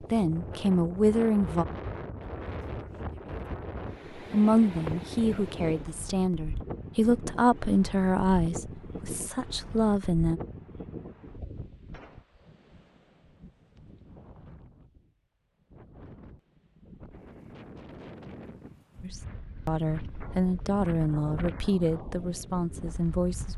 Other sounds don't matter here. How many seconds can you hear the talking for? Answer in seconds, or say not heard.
12 s.